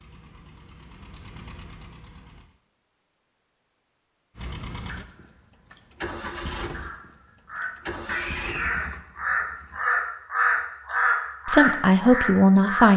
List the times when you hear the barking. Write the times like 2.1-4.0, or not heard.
not heard.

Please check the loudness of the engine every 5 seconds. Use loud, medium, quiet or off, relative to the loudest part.
medium, loud, off.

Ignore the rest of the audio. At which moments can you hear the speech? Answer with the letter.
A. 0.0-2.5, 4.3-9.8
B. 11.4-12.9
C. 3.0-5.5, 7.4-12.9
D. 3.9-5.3
B.